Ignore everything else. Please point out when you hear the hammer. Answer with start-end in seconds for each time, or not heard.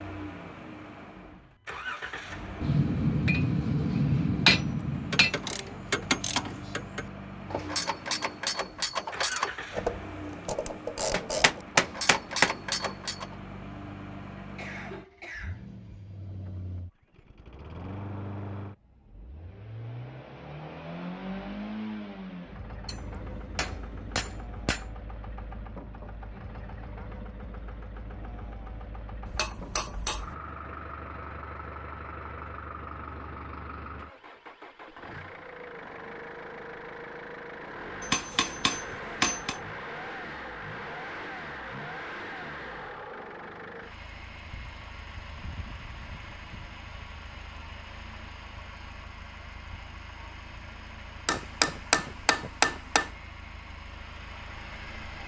2.6-5.3, 11.1-12.6, 22.9-24.9, 29.2-30.4, 38.0-39.5, 51.2-53.1.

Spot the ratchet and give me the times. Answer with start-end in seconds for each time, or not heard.
5.0-13.3.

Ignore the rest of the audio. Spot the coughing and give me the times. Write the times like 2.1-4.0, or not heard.
14.3-15.7.